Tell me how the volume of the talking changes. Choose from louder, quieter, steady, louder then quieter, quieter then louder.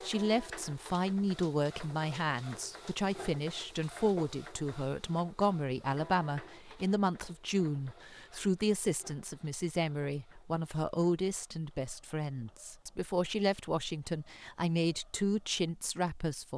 steady.